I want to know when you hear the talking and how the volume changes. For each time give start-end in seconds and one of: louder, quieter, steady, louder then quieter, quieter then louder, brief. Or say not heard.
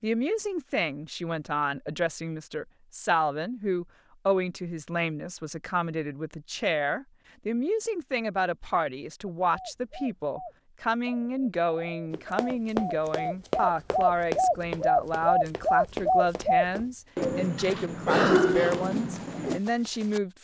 0.0-20.3 steady.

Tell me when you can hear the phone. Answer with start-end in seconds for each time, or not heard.
not heard.